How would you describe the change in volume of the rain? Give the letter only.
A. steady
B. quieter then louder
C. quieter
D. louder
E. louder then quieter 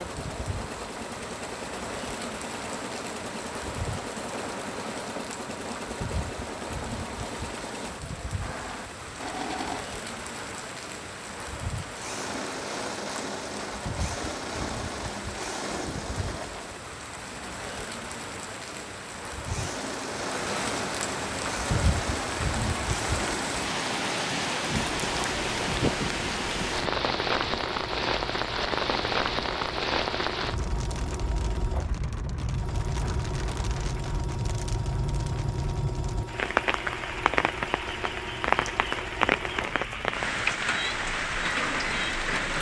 D.